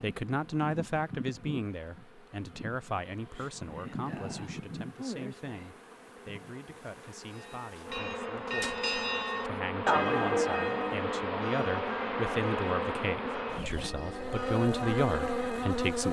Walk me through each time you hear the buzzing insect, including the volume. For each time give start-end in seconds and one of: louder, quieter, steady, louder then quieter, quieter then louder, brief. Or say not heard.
0.0-16.0 louder.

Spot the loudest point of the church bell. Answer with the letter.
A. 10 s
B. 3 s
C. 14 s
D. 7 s
A.